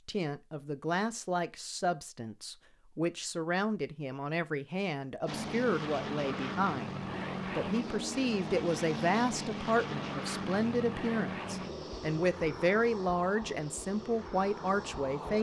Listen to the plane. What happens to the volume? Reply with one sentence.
The loudness of the plane goes down.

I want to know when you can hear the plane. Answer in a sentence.
You can hear the plane from 5.2 to 15.3 s.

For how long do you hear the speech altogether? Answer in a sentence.
The speech can be heard for 15 seconds in total.